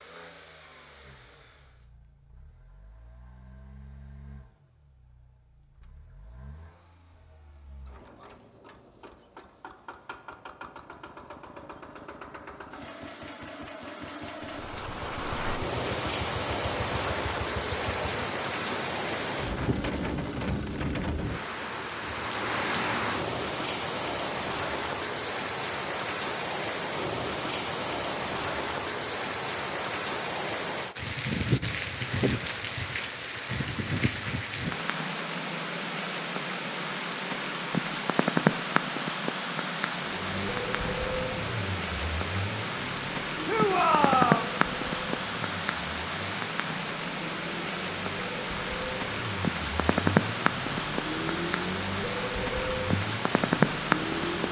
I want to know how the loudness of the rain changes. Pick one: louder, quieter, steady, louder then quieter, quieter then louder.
steady.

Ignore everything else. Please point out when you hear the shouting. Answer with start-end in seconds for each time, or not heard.
43.5-44.5.